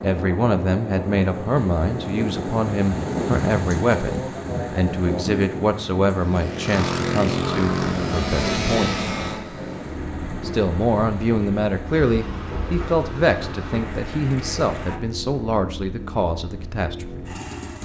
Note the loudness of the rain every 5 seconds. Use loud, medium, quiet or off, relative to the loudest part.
loud, loud, medium, off.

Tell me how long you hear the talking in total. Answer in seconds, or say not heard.
16 s.